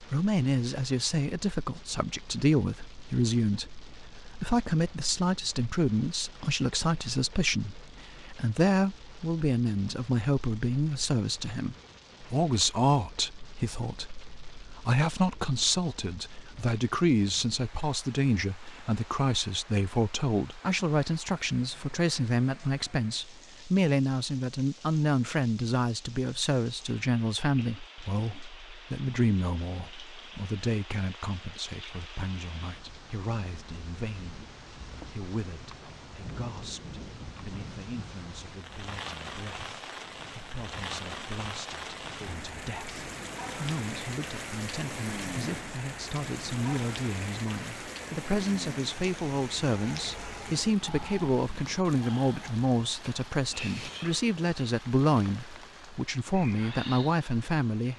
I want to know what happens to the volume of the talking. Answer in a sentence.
The loudness of the talking goes down, then up.